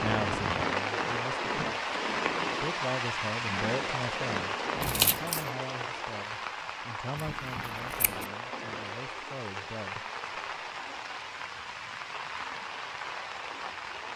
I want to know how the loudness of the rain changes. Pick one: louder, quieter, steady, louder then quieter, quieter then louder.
quieter.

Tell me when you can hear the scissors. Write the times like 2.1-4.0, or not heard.
4.8-5.5, 7.2-8.2.